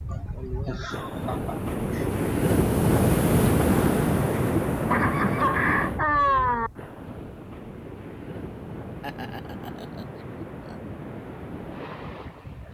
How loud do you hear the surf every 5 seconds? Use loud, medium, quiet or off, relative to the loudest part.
loud, medium, quiet.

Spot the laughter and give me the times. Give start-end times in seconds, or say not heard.
0.1-2.1, 4.8-6.7, 9.0-10.8.